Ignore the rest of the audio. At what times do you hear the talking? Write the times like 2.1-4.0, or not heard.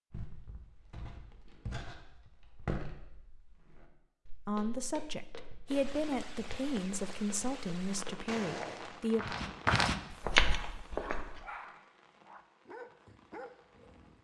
4.5-9.3.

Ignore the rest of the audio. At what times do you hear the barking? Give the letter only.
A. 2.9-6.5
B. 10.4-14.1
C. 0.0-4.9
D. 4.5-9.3
B.